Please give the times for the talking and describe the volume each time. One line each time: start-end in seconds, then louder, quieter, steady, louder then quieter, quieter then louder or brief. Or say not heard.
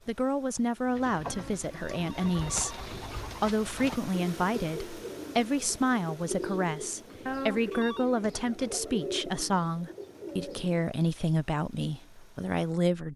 0.1-13.1 steady.